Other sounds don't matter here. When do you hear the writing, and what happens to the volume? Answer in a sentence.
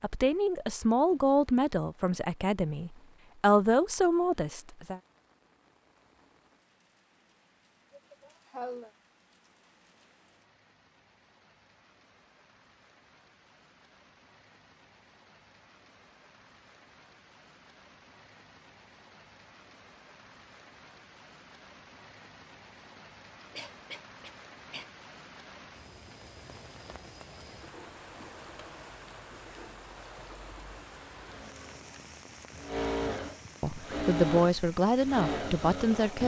You can't hear the writing here.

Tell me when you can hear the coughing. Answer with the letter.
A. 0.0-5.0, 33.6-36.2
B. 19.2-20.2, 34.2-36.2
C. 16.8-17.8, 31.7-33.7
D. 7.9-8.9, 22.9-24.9
D.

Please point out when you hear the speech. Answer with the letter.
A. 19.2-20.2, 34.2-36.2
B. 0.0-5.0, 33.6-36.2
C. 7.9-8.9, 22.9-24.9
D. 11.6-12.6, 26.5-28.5
B.